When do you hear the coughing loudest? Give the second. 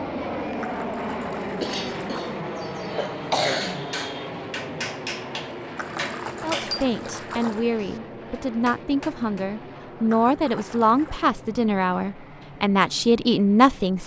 3 s.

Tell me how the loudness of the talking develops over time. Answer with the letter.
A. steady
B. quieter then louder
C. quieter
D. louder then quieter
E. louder
E.